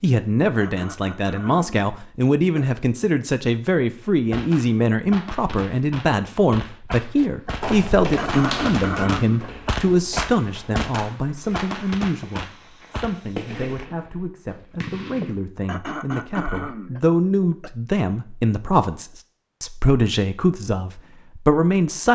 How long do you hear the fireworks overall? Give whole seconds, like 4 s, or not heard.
11 s.